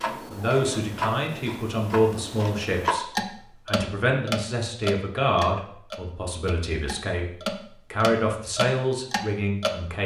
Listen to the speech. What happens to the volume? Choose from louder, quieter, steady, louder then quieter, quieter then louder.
quieter then louder.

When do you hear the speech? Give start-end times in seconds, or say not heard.
0.1-10.0.